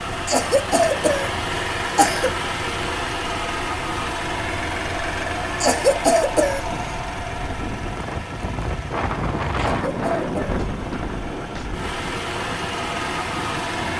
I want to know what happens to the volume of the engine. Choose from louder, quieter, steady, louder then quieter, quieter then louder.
quieter then louder.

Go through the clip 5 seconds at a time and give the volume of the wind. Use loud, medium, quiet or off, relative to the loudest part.
medium, loud, loud.